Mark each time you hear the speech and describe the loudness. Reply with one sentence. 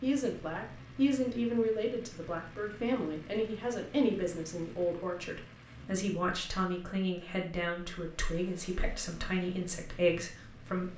You can hear the speech from 0.0 to 10.9 s, at a steady volume.